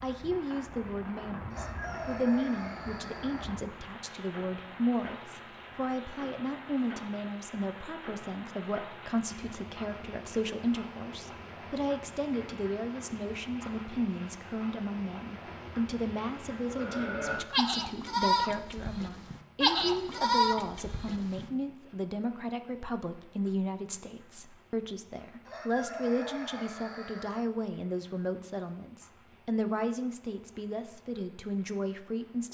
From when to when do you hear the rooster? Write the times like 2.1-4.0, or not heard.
1.5-3.5, 25.4-27.4.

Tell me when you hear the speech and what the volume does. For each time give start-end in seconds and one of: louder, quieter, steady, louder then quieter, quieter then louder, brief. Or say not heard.
0.0-32.4 steady.